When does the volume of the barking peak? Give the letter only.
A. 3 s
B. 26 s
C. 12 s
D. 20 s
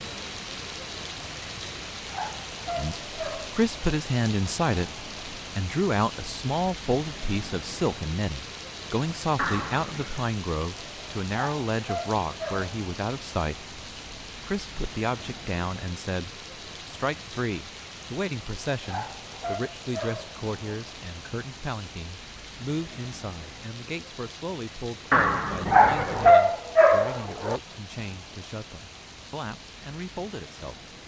B.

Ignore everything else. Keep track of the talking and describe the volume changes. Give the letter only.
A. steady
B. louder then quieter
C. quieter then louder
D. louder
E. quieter
E.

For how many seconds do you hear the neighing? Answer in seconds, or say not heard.
2 s.